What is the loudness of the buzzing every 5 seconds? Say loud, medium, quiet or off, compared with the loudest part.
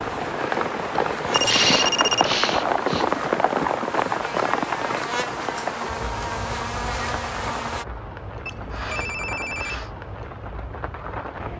medium, loud, off.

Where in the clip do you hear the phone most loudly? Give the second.
2 s.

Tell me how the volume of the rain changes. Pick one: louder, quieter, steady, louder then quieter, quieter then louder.
quieter.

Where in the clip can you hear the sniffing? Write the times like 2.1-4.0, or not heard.
1.4-3.0, 8.7-9.9.